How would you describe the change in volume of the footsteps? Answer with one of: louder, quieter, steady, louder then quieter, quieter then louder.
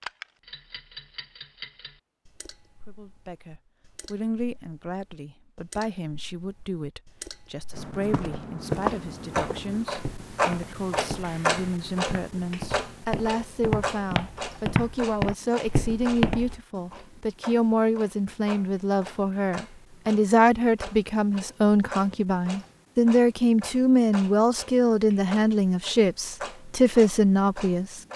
quieter then louder.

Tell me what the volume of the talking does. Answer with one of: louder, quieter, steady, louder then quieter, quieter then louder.
louder.